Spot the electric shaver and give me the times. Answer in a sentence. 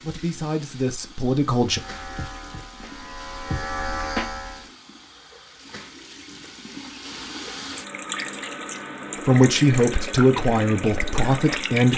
The electric shaver can be heard from 1.6 to 4.7 s.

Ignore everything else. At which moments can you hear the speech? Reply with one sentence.
You can hear the speech from 0.0 to 1.8 s and from 9.2 to 11.9 s.